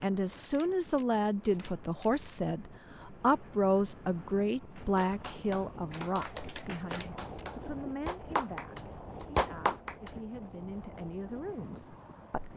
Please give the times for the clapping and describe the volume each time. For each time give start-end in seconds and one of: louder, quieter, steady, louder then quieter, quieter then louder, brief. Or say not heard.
4.8-10.1 louder.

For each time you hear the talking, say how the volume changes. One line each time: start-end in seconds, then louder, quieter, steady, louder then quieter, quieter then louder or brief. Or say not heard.
0.0-12.5 quieter.